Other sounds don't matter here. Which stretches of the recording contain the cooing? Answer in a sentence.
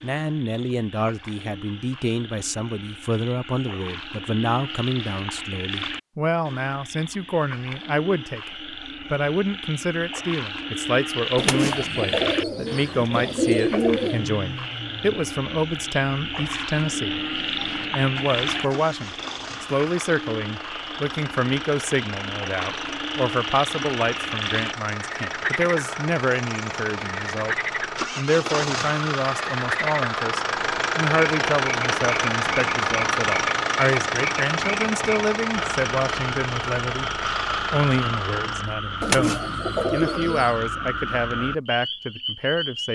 You can hear the cooing from 11.3 to 14.2 s and from 39.0 to 40.5 s.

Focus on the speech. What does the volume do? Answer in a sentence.
The loudness of the speech stays about the same.